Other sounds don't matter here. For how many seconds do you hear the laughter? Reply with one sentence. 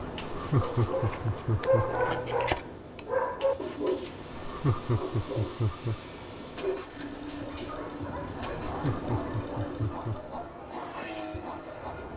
The laughter can be heard for 5 seconds in total.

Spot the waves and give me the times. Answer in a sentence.
You can hear the waves from 0.0 to 12.1 s.